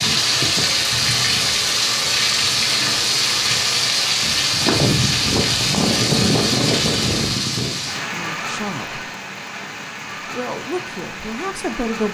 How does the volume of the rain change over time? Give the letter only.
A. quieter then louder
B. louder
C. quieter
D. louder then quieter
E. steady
C.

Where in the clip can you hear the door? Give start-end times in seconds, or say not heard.
not heard.